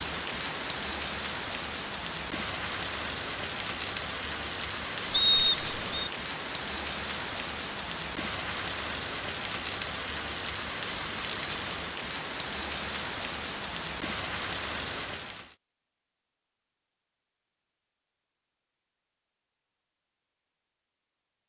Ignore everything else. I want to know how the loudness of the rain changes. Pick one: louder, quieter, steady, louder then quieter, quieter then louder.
steady.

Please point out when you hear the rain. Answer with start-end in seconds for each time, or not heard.
0.0-15.6.